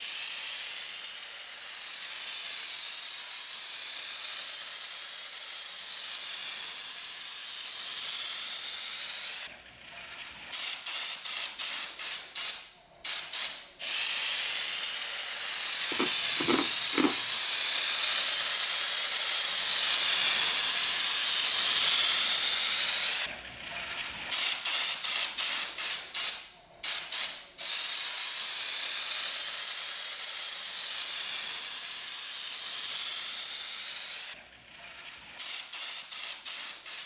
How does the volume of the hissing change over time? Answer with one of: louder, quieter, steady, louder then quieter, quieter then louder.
louder then quieter.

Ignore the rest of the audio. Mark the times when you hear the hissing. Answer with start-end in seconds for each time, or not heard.
0.0-37.0.